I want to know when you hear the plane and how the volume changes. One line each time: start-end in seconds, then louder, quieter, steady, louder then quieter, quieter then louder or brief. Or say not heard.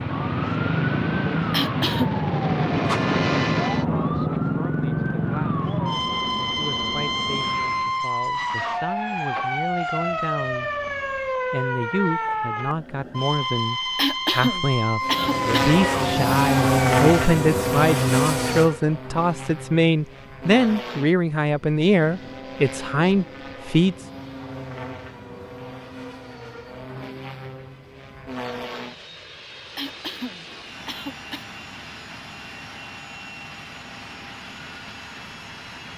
0.0-8.1 louder then quieter
15.0-35.9 quieter.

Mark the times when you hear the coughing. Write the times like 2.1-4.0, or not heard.
1.5-2.2, 13.9-15.7, 29.8-31.4.